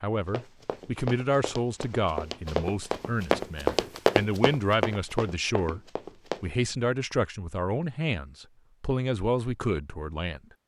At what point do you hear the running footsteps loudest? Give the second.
4 s.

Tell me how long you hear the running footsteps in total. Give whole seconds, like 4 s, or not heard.
6 s.